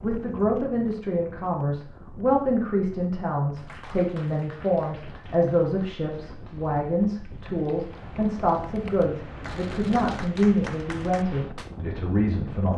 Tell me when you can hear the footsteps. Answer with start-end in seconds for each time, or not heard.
not heard.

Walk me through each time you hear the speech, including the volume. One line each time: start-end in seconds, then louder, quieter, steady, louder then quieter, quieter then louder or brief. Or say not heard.
0.0-12.7 steady.